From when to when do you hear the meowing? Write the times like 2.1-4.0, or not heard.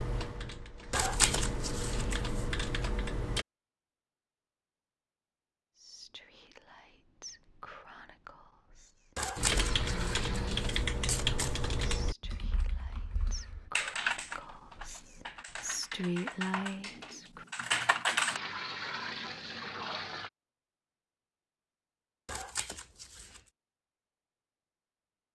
not heard.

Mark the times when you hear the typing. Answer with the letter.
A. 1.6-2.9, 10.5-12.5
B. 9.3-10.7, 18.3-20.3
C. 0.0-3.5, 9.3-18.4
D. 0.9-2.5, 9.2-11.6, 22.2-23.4
C.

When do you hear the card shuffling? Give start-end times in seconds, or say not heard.
0.9-2.5, 9.2-11.6, 22.2-23.4.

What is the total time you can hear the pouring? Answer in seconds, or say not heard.
3 s.